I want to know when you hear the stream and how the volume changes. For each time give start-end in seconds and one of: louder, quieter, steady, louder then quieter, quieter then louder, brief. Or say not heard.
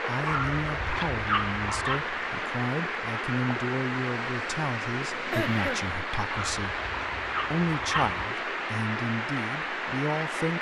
0.0-10.5 steady.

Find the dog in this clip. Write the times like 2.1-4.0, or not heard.
0.2-2.0, 6.3-8.2.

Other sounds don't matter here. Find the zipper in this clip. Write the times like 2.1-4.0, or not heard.
not heard.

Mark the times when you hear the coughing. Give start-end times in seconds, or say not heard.
5.3-6.0.